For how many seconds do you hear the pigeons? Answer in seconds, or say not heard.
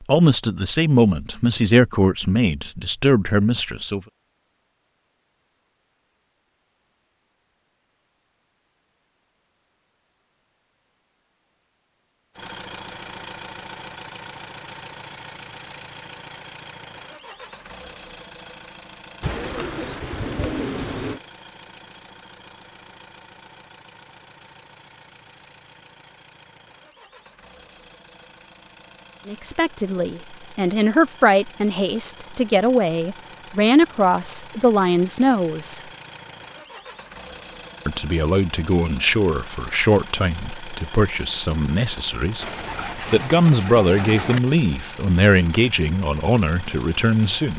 4 s.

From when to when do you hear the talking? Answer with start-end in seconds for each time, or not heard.
0.0-4.0, 29.2-35.8, 37.9-47.5.